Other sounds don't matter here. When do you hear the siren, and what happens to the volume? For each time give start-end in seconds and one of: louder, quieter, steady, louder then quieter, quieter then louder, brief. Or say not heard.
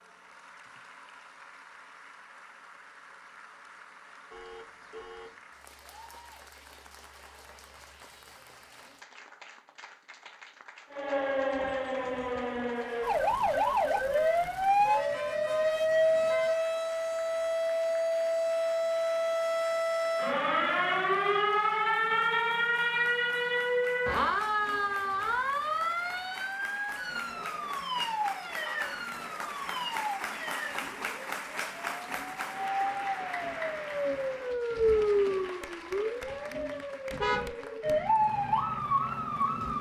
10.9-39.7 quieter then louder.